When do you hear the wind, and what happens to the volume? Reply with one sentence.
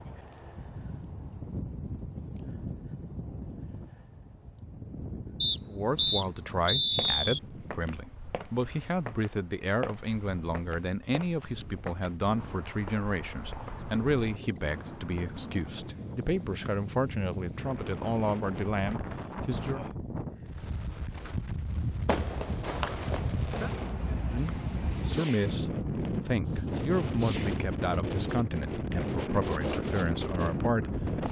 You can hear the wind from 0.0 to 31.2 s, getting quieter then louder.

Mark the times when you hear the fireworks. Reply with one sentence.
You can hear the fireworks from 22.1 to 28.1 s.